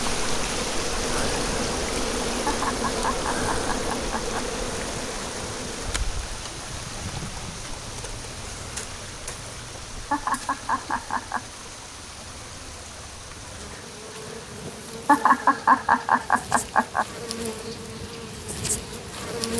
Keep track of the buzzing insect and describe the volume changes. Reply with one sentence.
The volume of the buzzing insect goes down, then up.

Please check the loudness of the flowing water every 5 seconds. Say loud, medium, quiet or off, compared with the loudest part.
loud, medium, medium, quiet.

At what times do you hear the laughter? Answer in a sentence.
The laughter can be heard from 2.5 to 4.5 s, from 10.1 to 11.4 s and from 15.1 to 17.1 s.